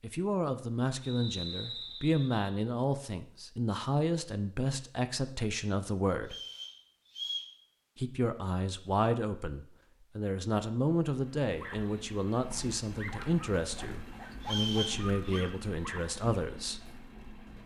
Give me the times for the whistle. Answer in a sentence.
The whistle can be heard from 1.0 to 2.5 s, from 6.2 to 7.5 s and from 14.4 to 15.4 s.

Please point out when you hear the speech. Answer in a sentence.
You can hear the speech from 0.0 to 6.3 s and from 8.0 to 16.9 s.